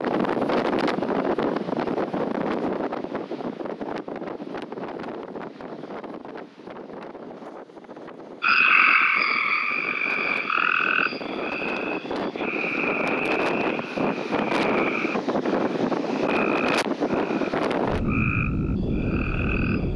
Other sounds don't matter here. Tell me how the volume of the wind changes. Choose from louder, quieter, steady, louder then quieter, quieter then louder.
quieter then louder.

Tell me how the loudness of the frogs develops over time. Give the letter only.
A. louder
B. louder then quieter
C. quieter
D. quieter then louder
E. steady
C.